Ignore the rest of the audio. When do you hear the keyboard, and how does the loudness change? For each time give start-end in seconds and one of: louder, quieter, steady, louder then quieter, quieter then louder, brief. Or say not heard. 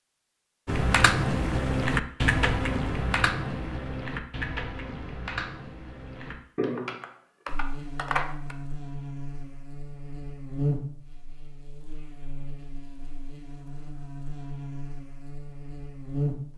0.7-8.6 quieter.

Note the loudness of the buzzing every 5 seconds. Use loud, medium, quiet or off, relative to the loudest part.
off, medium, loud, loud.